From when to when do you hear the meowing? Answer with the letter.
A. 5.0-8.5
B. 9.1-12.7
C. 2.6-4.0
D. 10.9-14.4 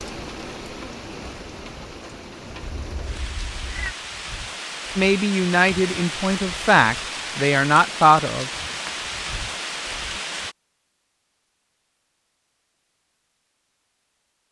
C.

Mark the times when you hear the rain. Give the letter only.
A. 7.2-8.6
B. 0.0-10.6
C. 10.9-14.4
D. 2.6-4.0
B.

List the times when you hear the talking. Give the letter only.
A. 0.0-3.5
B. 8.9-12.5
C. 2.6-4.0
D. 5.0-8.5
D.